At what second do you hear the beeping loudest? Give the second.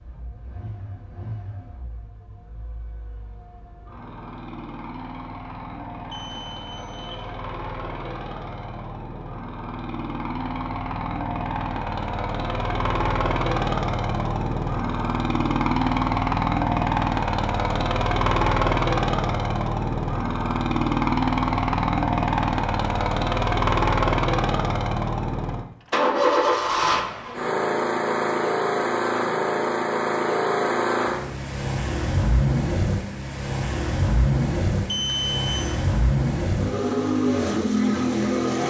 35 s.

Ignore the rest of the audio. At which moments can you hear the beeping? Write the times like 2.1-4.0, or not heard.
6.1-7.4, 34.9-35.8.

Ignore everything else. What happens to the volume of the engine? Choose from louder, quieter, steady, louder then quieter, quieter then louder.
louder.